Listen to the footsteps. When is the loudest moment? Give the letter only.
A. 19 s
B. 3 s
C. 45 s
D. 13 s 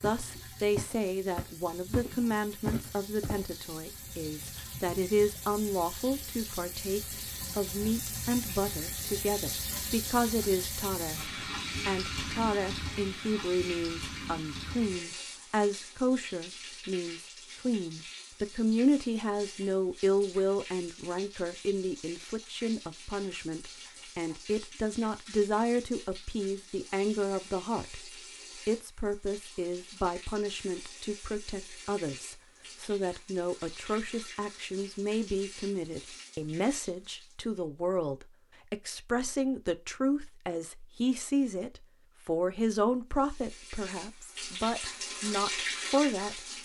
B.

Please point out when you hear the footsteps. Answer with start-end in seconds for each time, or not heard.
0.0-3.5.